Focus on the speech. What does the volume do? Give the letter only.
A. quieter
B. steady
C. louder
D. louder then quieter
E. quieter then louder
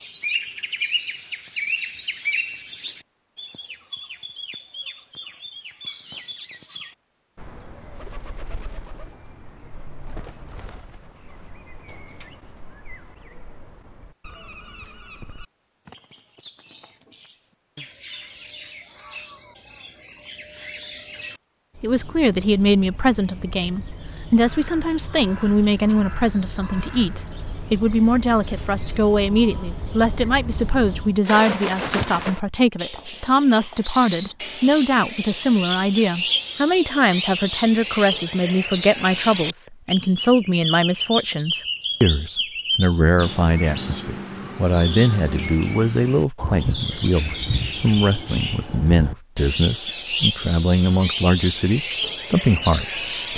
B.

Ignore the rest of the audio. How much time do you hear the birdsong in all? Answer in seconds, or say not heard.
53 s.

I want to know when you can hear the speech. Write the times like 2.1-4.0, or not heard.
21.8-53.3.